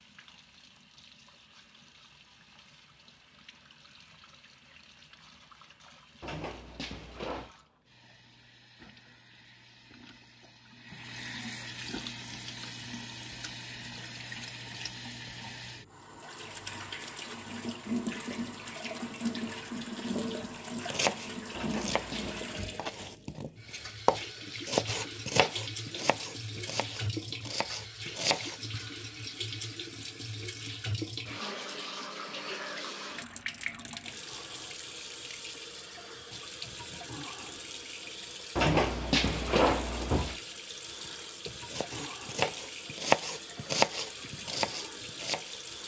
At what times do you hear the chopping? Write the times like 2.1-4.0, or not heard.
20.4-28.6, 41.6-45.6.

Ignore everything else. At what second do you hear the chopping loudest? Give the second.
43 s.